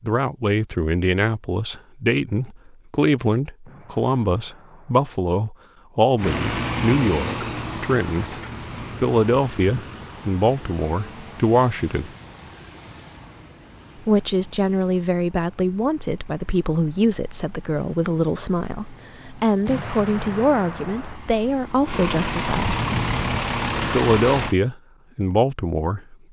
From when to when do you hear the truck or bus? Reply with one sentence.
The truck or bus can be heard from 6.2 to 24.6 s.